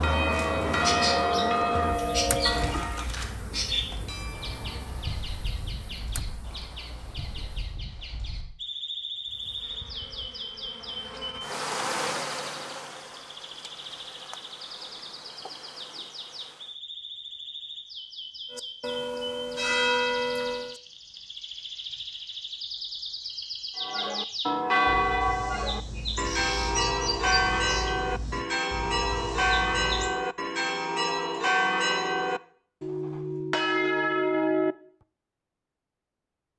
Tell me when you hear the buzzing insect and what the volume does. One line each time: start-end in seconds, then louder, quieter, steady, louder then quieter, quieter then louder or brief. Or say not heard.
0.0-7.8 quieter
9.2-16.8 louder then quieter.